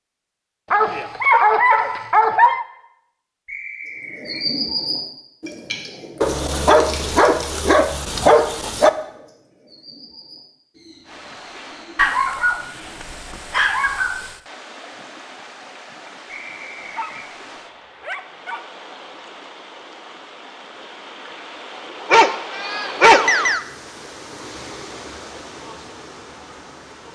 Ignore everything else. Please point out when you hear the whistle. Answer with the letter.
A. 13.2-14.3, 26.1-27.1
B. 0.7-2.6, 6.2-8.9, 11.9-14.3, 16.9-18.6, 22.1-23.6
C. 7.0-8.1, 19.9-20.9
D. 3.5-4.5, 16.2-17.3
D.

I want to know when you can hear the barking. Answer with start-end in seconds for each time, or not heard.
0.7-2.6, 6.2-8.9, 11.9-14.3, 16.9-18.6, 22.1-23.6.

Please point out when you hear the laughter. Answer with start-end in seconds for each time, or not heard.
not heard.